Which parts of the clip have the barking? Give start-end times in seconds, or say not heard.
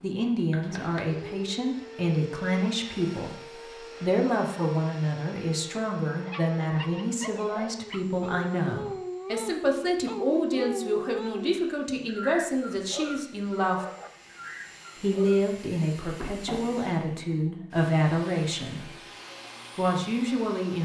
6.0-15.5.